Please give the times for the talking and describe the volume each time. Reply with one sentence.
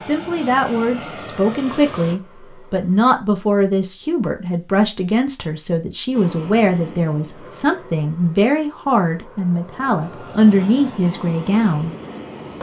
You can hear the talking from 0.1 to 11.9 s, at a steady volume.